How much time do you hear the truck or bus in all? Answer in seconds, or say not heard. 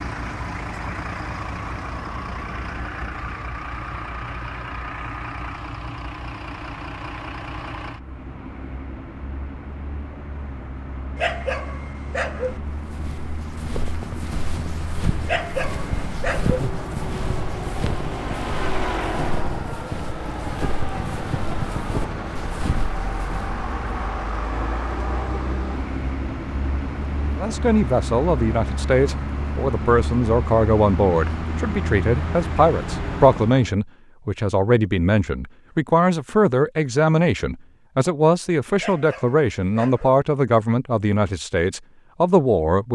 34 s.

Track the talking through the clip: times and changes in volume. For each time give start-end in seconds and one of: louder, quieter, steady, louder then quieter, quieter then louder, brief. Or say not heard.
27.4-42.9 steady.